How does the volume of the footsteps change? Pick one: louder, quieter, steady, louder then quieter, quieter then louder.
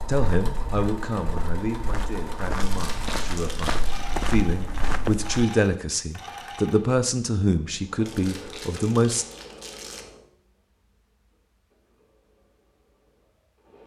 louder.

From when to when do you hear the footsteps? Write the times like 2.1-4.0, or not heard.
0.0-5.5.